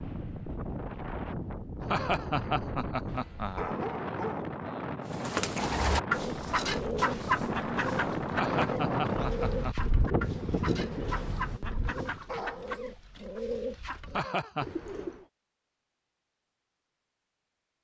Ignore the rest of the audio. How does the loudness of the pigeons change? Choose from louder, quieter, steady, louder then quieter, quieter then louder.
quieter.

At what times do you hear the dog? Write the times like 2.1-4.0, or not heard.
3.0-4.5, 10.8-11.2, 12.2-12.8.